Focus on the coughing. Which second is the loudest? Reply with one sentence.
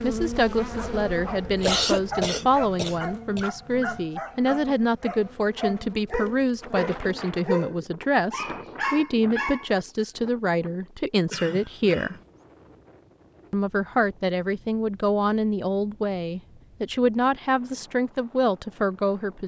The loudest moment of the coughing is at 2 seconds.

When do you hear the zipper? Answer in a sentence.
The zipper can't be heard in this clip.